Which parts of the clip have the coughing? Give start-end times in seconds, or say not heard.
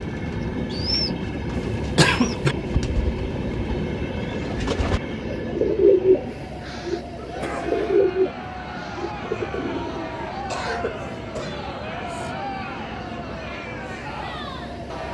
1.8-2.5, 7.2-7.7, 10.5-12.3.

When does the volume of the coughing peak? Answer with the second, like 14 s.
2 s.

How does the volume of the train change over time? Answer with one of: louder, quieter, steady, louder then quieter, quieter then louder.
quieter.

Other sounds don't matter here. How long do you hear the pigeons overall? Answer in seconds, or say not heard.
10 s.